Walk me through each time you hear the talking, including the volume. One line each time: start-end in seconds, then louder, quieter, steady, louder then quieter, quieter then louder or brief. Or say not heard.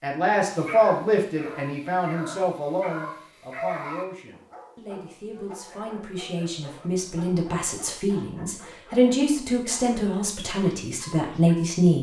0.0-11.9 quieter then louder.